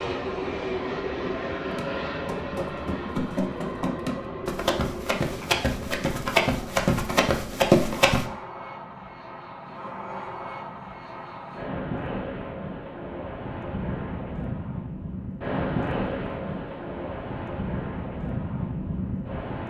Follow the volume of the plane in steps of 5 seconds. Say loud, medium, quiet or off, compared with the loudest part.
loud, medium, loud, loud.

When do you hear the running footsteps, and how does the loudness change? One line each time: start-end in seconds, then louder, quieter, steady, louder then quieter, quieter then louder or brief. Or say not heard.
1.6-8.2 louder.